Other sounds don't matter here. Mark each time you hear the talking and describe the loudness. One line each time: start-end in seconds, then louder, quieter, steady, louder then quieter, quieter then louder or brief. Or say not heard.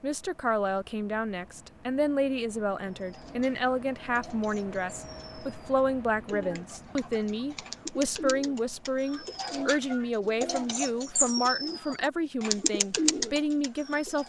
0.0-14.2 steady.